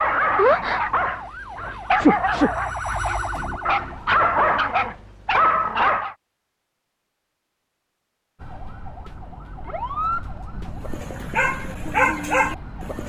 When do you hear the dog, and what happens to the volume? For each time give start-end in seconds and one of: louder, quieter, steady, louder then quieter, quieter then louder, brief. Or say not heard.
0.0-6.2 quieter then louder
10.8-13.0 brief.